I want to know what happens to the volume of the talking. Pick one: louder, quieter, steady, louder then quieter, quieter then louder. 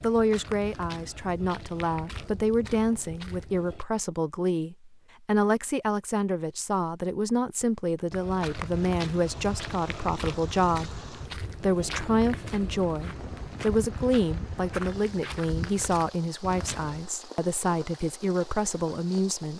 steady.